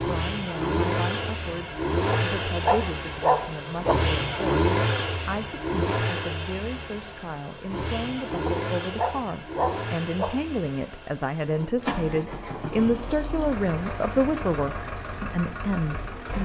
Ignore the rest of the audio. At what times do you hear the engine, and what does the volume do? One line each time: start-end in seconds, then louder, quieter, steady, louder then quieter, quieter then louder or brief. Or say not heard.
0.0-16.4 quieter.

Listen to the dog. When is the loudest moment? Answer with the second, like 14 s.
3 s.